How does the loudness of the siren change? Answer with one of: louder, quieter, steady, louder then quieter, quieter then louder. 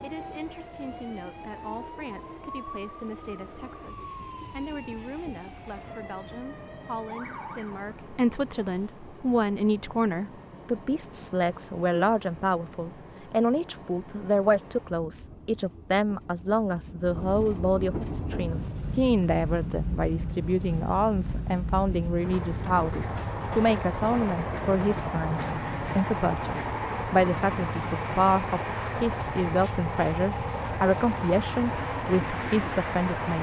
steady.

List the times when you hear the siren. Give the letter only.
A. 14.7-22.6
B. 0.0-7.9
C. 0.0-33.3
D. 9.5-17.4
B.